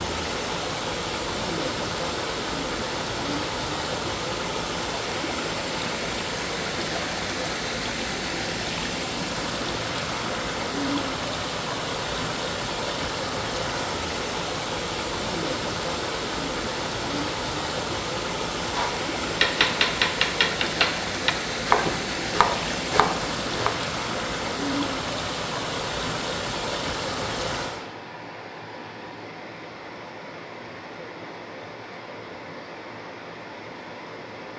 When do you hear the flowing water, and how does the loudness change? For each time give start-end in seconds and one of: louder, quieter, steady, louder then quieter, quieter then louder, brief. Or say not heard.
0.0-34.5 quieter.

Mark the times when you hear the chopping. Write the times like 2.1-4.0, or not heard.
18.6-23.8.